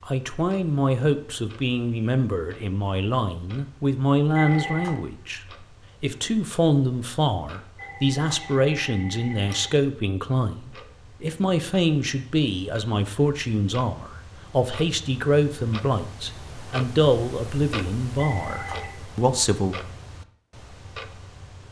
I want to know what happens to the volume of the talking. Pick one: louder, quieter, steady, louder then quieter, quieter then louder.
steady.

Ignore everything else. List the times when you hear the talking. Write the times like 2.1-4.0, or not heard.
0.1-5.4, 6.0-19.8.